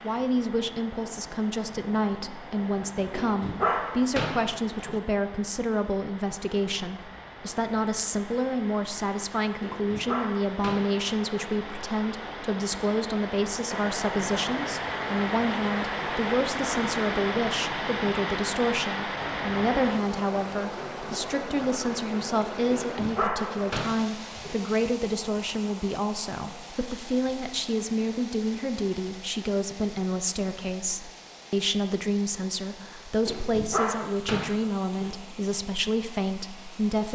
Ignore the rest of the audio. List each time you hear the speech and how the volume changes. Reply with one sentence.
You can hear the speech from 0.0 to 37.1 s, at a steady volume.